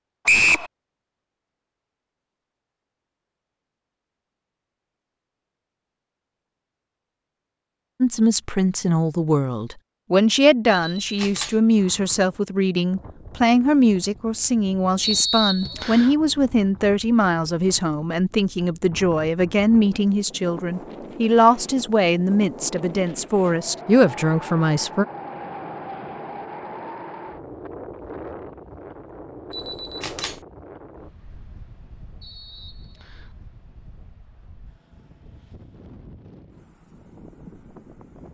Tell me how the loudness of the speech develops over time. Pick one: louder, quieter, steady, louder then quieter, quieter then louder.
steady.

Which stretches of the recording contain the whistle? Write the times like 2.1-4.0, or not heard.
0.2-0.7, 15.0-16.1, 32.2-33.3.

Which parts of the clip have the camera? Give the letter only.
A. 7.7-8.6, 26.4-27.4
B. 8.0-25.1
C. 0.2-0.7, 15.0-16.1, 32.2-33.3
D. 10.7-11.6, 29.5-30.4
D.